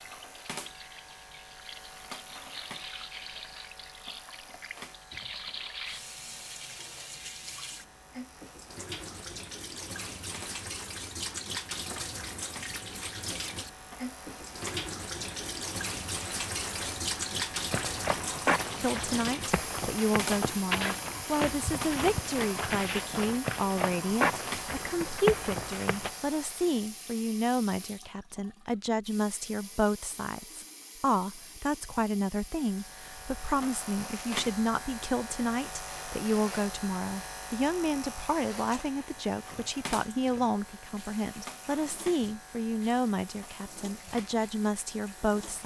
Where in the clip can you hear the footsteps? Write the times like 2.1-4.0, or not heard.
17.7-26.1.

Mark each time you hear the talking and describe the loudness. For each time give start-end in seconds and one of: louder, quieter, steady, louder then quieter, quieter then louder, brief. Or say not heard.
18.8-45.6 steady.